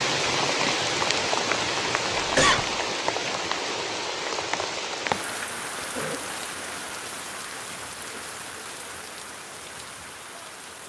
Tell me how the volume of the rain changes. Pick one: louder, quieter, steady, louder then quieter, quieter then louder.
quieter.